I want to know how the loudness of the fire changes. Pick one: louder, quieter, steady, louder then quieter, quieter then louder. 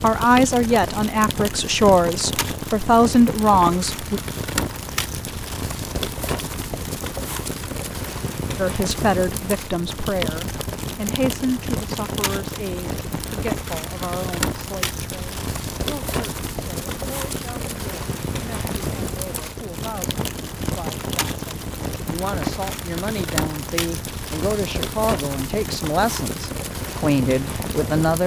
steady.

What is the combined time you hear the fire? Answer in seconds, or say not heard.
28 s.